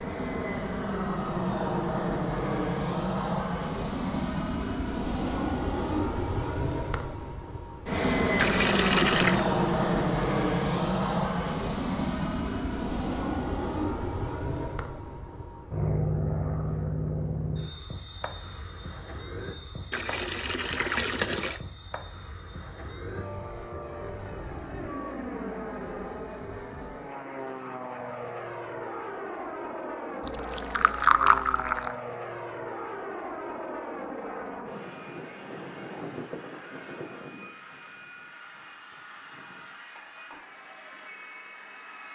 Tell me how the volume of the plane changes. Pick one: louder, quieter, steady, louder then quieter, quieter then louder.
quieter.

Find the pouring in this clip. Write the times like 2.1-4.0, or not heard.
8.3-9.4, 19.9-21.6, 30.2-31.9.